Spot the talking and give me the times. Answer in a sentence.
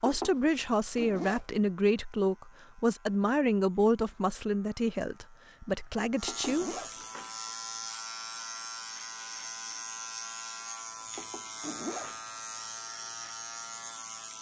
You can hear the talking from 0.0 to 6.7 s.